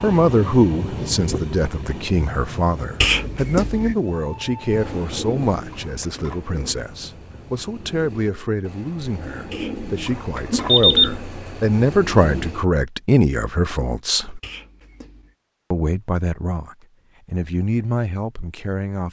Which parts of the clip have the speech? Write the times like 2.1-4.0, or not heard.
0.0-14.4, 15.7-19.0.